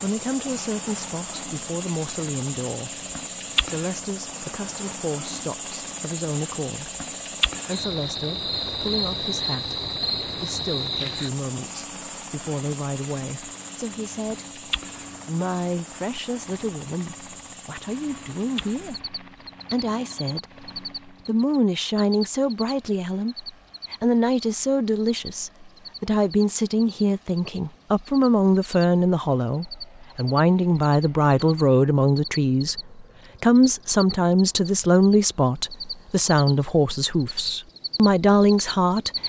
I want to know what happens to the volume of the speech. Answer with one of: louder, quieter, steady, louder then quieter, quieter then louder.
louder.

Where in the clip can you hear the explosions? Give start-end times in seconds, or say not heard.
not heard.